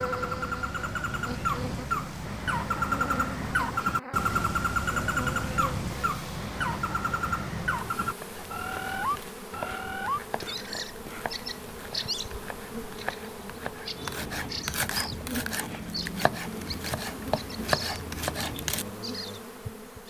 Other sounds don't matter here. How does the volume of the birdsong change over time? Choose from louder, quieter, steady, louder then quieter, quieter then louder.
quieter.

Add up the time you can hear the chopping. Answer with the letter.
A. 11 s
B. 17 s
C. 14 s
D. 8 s
A.